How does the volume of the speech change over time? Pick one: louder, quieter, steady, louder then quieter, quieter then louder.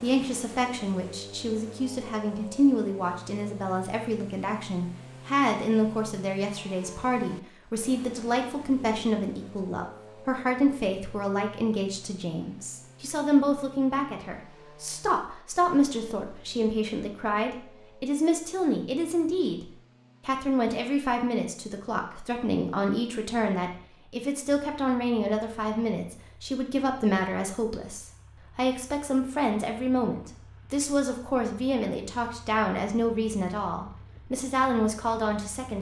steady.